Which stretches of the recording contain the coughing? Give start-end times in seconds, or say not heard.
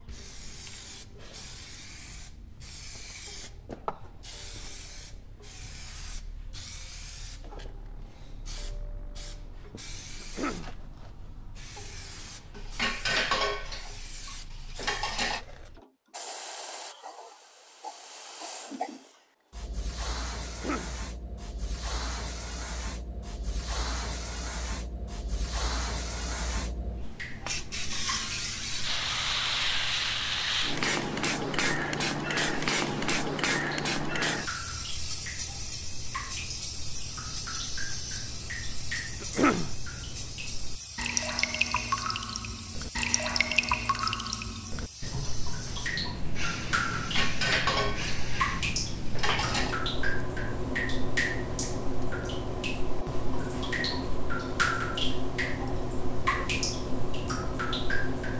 10.2-10.8, 20.4-21.0, 39.2-39.8.